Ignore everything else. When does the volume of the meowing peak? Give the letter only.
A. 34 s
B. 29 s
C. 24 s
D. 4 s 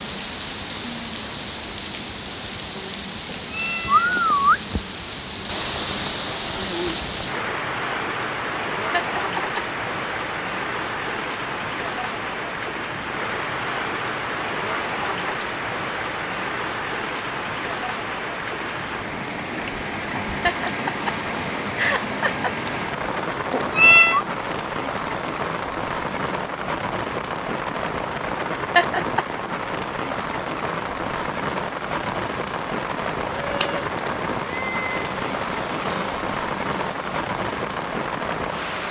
C.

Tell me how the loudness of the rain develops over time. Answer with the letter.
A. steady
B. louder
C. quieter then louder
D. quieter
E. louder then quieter
A.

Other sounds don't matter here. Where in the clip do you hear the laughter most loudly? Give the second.
29 s.